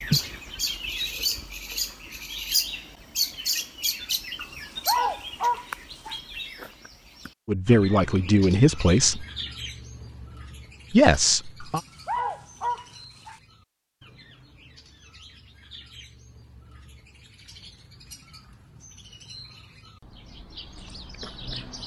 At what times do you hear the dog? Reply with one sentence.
The dog can be heard from 4.3 to 6.2 s and from 11.6 to 13.4 s.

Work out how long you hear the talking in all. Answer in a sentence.
The talking can be heard for 3 seconds in total.